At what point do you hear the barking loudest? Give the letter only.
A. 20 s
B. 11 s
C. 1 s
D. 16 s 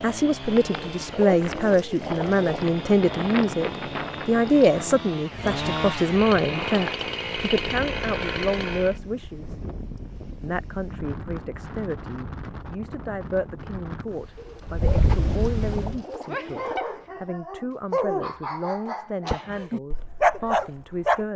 A.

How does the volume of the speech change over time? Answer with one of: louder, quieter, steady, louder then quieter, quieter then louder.
quieter.